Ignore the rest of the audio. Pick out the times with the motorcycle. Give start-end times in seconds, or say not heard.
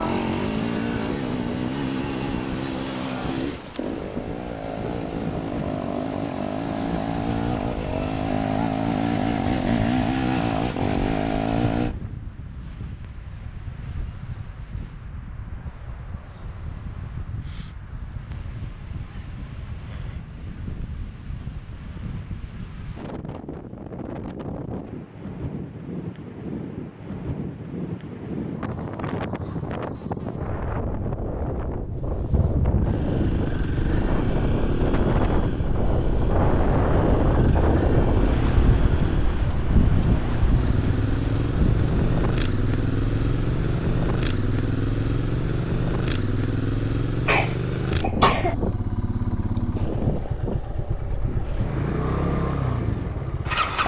0.0-11.9, 32.2-53.8.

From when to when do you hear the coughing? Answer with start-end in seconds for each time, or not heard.
47.2-48.5.